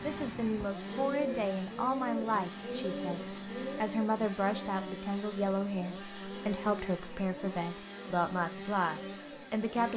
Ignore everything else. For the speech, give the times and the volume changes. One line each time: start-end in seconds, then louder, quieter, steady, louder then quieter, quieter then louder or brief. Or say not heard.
0.0-9.9 steady.